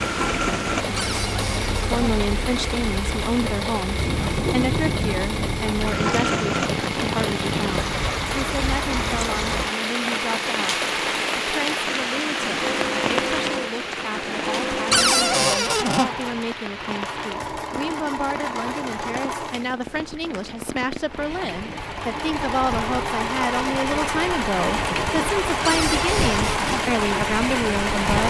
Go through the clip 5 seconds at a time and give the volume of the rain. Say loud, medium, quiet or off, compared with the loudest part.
loud, loud, loud, medium, medium, loud.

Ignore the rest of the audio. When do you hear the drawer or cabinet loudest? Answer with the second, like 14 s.
15 s.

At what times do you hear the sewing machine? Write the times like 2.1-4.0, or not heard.
0.0-28.2.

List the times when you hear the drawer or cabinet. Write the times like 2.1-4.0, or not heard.
0.9-2.0, 14.9-16.1, 25.6-26.9.